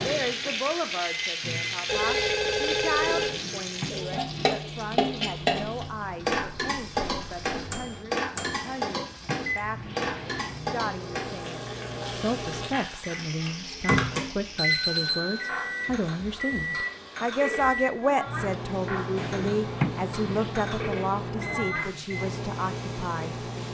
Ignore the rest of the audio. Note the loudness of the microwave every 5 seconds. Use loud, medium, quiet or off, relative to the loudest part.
medium, medium, loud, loud, loud.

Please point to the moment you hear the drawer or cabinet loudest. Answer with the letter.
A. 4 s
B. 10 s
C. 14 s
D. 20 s
D.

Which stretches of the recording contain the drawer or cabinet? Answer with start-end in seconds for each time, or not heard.
3.1-4.6, 8.7-10.6, 19.1-20.6.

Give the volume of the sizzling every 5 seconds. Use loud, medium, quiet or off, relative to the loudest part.
loud, loud, medium, medium, medium.